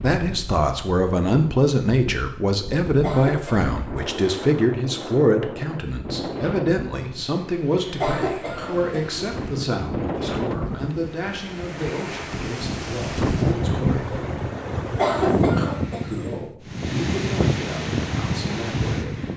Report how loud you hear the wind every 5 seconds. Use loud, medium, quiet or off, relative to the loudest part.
medium, medium, loud, loud.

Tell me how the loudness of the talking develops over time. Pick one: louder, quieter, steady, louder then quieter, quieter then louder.
quieter.